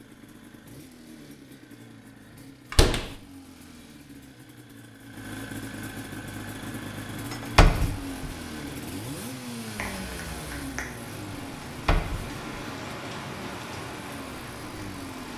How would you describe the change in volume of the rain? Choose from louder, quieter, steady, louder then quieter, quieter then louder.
louder.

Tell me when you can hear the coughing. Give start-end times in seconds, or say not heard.
9.8-10.9.